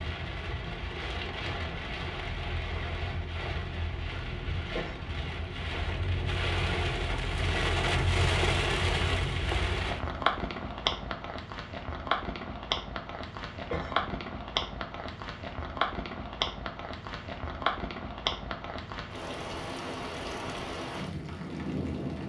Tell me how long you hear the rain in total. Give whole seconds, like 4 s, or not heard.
22 s.